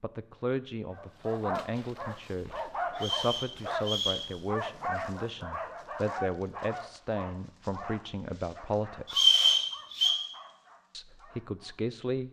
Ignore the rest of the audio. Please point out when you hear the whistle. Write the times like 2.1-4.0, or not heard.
3.0-4.2, 9.1-10.2.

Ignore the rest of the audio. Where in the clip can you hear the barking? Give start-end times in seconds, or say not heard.
0.9-11.8.